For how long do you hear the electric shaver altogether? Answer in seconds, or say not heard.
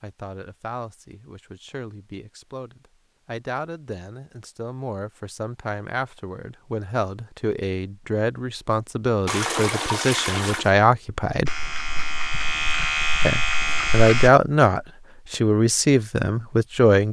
3 s.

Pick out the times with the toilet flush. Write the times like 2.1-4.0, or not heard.
9.2-10.7.